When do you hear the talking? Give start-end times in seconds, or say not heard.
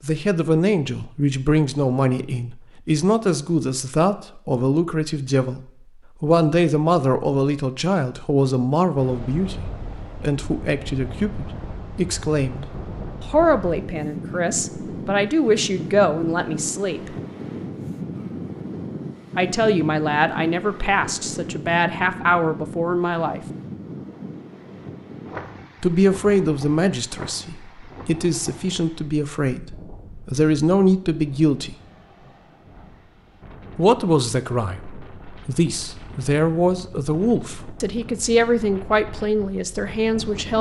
0.0-12.7, 13.2-17.1, 19.4-23.4, 25.8-31.8, 33.8-40.5.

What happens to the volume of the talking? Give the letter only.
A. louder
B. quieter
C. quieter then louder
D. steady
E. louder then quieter
D.